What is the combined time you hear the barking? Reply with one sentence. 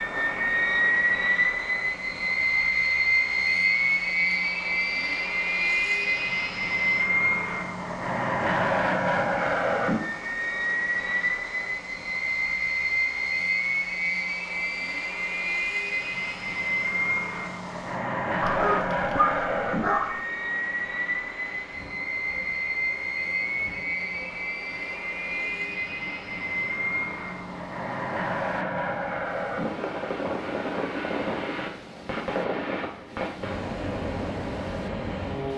The barking can be heard for 2 seconds in total.